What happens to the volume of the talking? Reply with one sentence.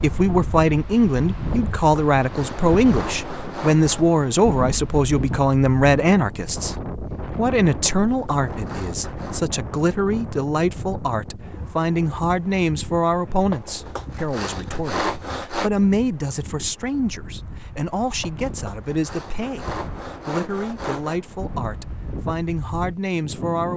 The volume of the talking goes down.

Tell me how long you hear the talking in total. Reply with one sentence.
You can hear the talking for 24 seconds altogether.